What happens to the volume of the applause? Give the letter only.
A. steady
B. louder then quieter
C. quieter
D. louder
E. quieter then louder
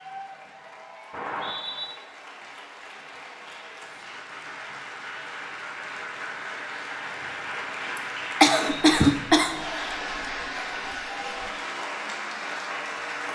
D.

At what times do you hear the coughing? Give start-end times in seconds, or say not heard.
8.0-10.0.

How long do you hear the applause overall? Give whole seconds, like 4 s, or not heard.
13 s.